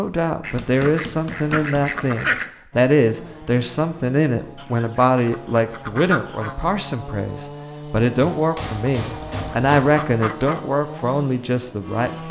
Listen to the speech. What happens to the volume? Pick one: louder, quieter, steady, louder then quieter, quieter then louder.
steady.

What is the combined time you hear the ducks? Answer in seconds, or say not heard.
6 s.